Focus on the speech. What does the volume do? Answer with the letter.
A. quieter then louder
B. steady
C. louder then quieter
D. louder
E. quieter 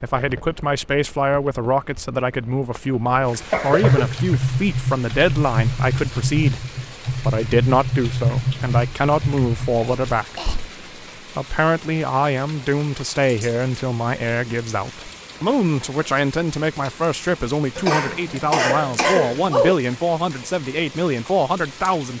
B.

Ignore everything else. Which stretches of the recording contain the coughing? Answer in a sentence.
You can hear the coughing from 3.3 to 4.4 s, from 9.8 to 10.6 s and from 17.8 to 19.8 s.